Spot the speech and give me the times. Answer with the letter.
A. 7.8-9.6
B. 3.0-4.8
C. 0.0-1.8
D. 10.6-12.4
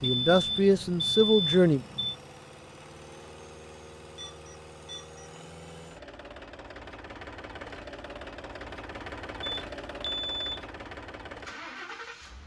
C.